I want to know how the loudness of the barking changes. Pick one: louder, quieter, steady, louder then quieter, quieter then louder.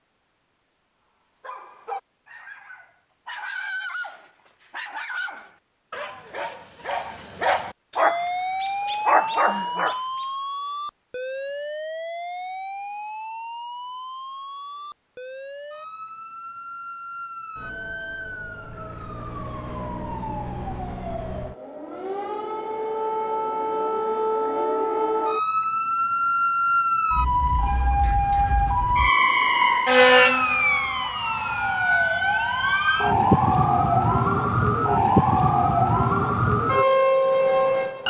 louder.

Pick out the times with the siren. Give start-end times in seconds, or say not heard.
8.0-38.0.